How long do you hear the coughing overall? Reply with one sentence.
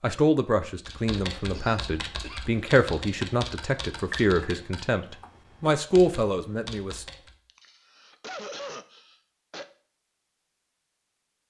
You can hear the coughing for 3 seconds altogether.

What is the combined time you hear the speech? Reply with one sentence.
The speech can be heard for 7 seconds in total.